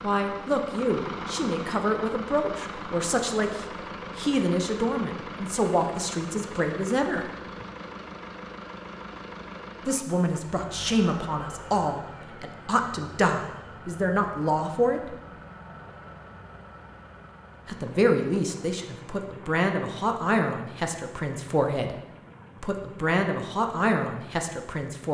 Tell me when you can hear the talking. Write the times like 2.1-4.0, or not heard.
0.0-7.3, 9.8-15.2, 17.6-21.9, 22.6-25.1.